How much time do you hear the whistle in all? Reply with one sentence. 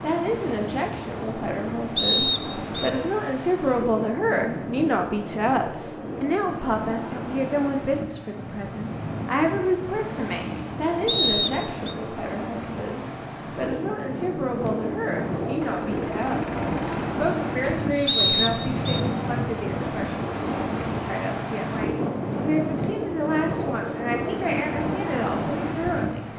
You can hear the whistle for 3 seconds altogether.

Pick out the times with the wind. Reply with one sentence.
You can hear the wind from 0.0 to 26.3 s.